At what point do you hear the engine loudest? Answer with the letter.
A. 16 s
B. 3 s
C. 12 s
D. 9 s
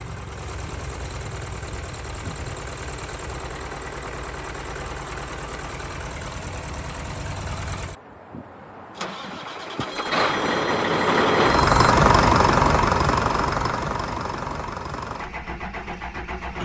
C.